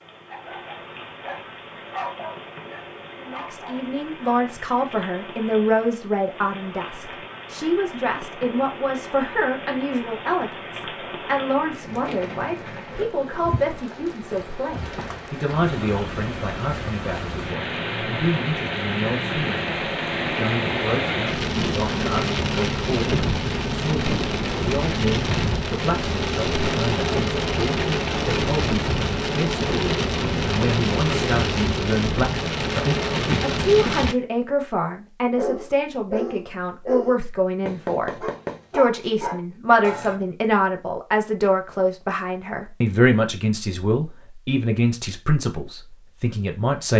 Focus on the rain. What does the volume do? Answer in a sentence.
The volume of the rain goes up.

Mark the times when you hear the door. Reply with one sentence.
The door can't be heard in this clip.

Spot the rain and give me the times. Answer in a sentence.
The rain can be heard from 0.0 to 34.1 s.